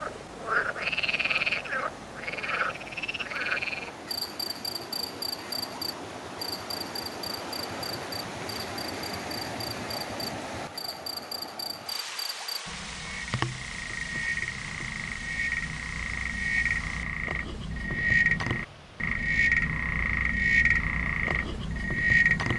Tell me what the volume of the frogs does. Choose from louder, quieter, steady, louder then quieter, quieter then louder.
quieter then louder.